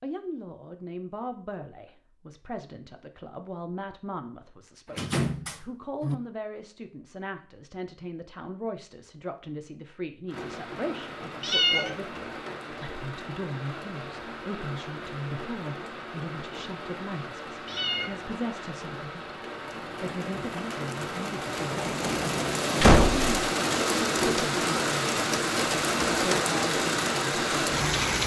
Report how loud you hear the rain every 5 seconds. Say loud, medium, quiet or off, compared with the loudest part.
off, off, quiet, quiet, loud, loud.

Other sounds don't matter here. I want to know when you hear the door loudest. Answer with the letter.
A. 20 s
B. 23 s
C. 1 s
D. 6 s
B.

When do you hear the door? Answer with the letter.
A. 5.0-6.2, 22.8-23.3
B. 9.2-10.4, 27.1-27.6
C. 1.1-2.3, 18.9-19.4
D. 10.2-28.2
A.